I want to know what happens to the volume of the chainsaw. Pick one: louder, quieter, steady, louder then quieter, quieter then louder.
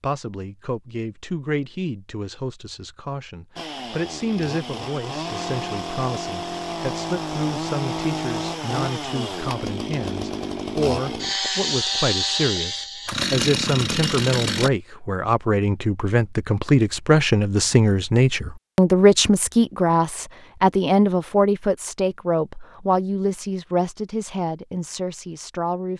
louder.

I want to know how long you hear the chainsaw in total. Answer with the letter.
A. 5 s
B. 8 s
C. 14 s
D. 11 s
D.